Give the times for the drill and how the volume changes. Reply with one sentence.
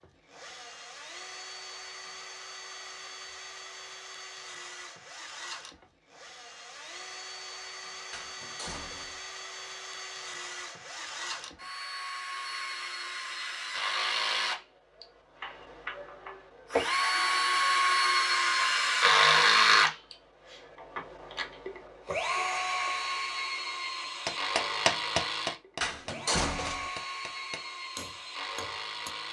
The drill can be heard from 0.0 to 29.2 s, getting louder then quieter.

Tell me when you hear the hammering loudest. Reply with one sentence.
The volume of the hammering peaks at 25 seconds.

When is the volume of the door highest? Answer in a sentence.
The loudest moment of the door is at 26 seconds.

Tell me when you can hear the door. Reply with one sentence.
You can hear the door from 8.1 to 9.2 s and from 25.8 to 26.9 s.